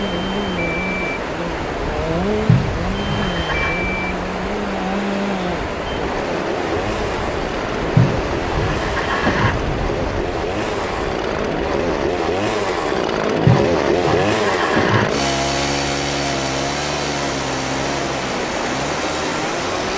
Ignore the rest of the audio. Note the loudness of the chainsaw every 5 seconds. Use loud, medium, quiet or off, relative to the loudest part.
medium, medium, loud, loud.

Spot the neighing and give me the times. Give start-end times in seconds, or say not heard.
2.5-3.9, 8.0-9.6, 13.4-15.1.